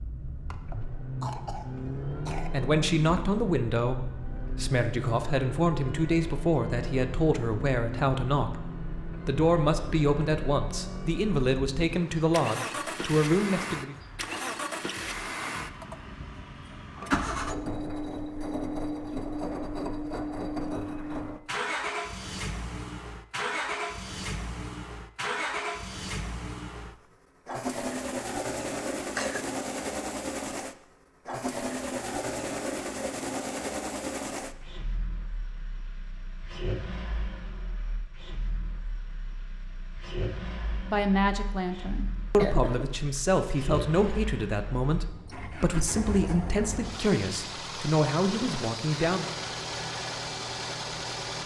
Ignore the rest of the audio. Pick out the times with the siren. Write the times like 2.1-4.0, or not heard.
not heard.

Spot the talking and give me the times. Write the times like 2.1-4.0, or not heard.
2.5-13.9, 40.9-49.2.